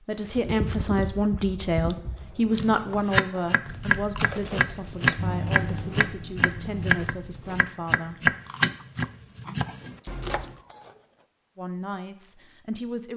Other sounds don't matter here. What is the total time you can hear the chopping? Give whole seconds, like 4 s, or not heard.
8 s.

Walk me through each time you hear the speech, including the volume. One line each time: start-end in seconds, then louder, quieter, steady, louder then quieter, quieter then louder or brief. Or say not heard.
0.1-8.3 quieter
11.6-13.1 brief.